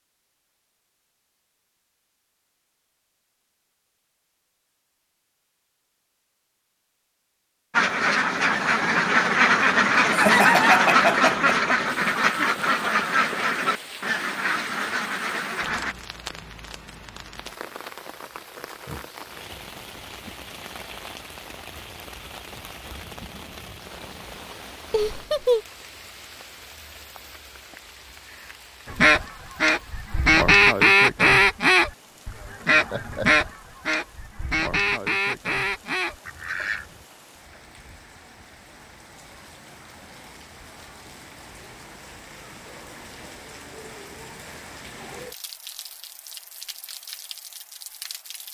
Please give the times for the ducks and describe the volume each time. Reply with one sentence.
You can hear the ducks from 7.7 to 15.9 s, getting quieter; and from 28.9 to 37.0 s, getting quieter.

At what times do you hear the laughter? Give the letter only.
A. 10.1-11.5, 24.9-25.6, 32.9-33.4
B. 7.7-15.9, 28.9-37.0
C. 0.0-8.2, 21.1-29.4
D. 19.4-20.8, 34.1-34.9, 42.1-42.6
A.